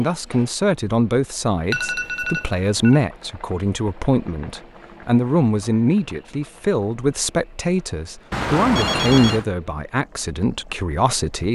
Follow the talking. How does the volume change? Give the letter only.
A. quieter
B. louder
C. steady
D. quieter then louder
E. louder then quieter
C.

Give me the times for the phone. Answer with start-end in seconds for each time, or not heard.
1.7-3.0, 8.3-9.4.